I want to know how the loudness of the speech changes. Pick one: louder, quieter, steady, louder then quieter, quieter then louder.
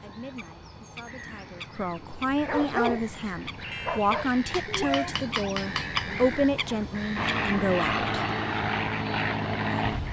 louder.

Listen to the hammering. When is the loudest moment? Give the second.
6 s.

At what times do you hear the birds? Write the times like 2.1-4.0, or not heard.
0.0-10.0.